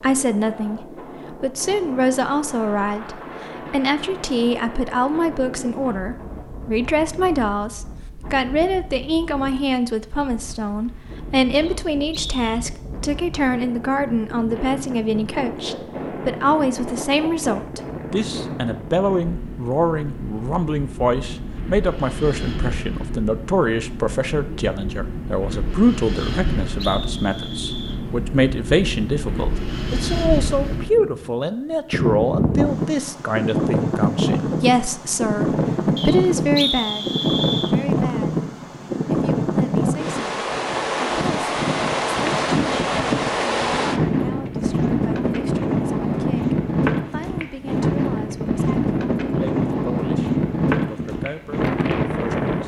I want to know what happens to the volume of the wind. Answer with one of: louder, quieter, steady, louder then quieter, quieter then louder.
louder.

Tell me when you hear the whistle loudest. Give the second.
37 s.